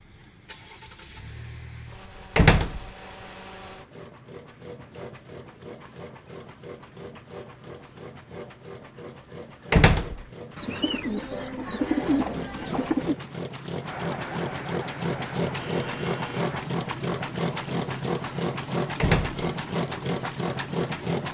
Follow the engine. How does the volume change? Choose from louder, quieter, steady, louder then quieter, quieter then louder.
louder.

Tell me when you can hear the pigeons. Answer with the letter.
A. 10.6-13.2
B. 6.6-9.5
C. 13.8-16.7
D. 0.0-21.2
A.